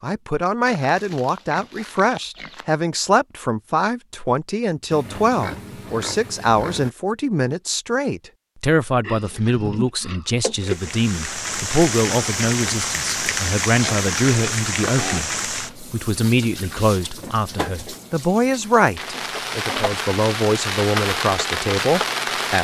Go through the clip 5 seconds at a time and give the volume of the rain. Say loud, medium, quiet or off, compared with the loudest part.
off, off, loud, medium, loud.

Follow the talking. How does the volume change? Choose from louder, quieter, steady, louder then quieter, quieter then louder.
steady.